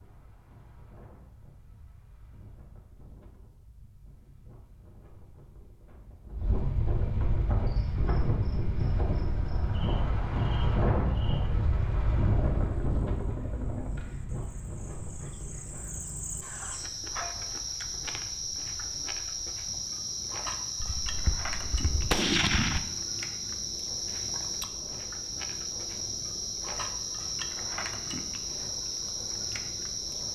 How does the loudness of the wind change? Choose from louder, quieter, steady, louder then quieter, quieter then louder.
louder then quieter.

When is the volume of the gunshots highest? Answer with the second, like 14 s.
22 s.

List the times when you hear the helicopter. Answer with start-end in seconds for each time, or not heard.
11.2-13.9.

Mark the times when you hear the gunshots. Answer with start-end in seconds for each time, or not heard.
20.8-22.8.